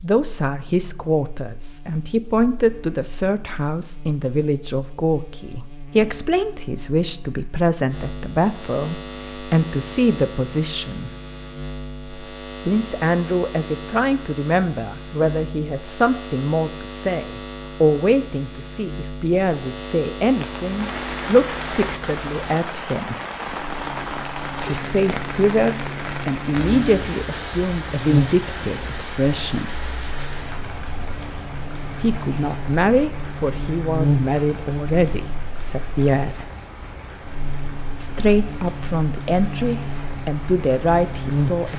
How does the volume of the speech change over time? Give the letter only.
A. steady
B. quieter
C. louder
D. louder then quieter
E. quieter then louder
A.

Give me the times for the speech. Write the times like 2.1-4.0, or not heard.
0.0-11.1, 12.7-23.1, 24.6-29.7, 32.0-36.5, 38.0-41.7.